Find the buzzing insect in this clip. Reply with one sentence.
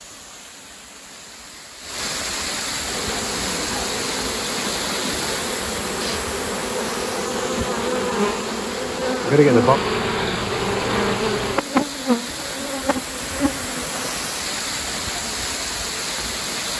The buzzing insect can be heard from 2.8 to 14.1 s.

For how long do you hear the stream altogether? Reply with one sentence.
You can hear the stream for 17 seconds altogether.